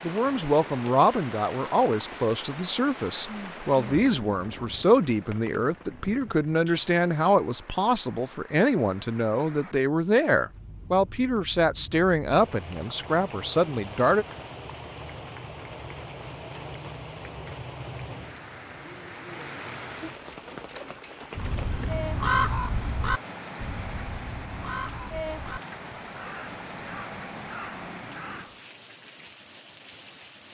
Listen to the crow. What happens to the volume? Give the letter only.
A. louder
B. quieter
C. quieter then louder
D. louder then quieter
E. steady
B.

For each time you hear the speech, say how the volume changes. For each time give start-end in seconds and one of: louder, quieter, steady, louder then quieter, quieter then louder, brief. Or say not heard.
0.0-14.2 steady.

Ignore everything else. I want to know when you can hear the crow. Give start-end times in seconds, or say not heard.
21.4-28.6.